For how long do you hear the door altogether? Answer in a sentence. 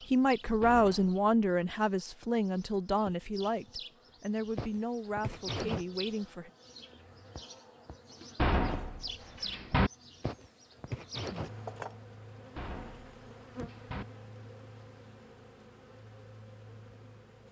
You can hear the door for 4 seconds altogether.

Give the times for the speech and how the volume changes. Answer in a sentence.
You can hear the speech from 0.1 to 6.5 s, getting quieter.